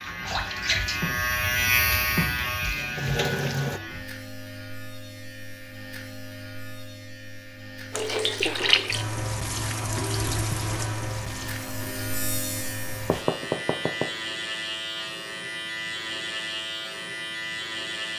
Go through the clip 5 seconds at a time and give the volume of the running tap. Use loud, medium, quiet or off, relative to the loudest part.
loud, loud, medium, off.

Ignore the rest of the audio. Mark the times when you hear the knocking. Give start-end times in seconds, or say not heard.
13.1-14.1.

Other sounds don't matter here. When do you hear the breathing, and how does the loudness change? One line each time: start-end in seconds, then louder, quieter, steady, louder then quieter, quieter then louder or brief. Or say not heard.
not heard.